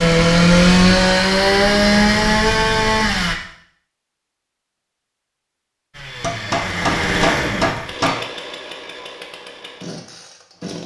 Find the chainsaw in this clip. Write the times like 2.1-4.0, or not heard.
0.0-3.4, 5.9-10.8.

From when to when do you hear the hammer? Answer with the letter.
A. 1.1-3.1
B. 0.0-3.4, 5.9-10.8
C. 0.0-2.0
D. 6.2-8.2
D.